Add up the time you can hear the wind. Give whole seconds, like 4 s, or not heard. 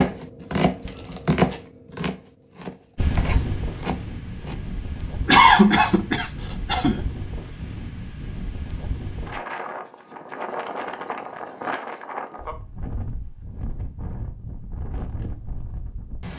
13 s.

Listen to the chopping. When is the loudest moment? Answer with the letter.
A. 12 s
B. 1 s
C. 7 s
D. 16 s
B.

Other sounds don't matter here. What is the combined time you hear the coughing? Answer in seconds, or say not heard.
2 s.